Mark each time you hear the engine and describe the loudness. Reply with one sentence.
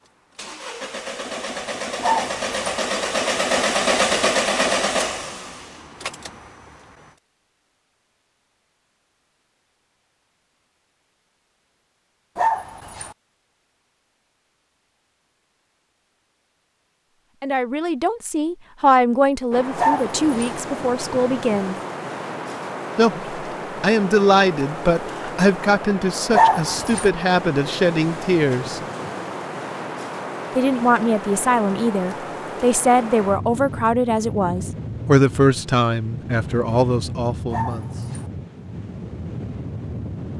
The engine can be heard from 0.0 to 7.2 s, getting louder then quieter.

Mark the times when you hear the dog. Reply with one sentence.
You can hear the dog from 2.0 to 2.8 s, from 12.3 to 13.2 s, from 19.8 to 20.6 s, from 26.3 to 27.1 s and from 37.5 to 38.2 s.